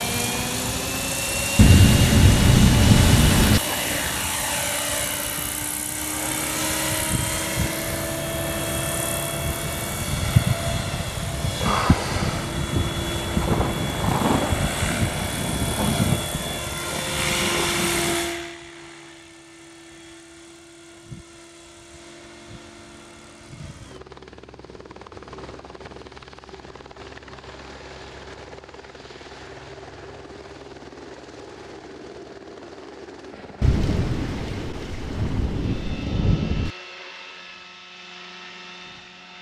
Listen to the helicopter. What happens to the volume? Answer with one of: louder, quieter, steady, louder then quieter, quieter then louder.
quieter.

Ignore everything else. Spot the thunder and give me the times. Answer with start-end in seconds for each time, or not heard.
1.6-3.6, 13.4-18.3, 33.6-36.7.